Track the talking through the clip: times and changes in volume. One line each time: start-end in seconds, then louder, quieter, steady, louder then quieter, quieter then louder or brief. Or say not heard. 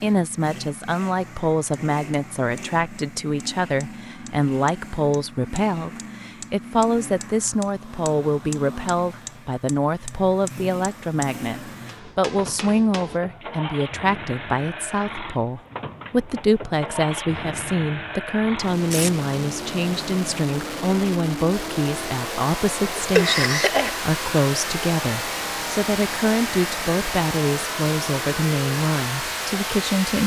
0.0-30.2 steady.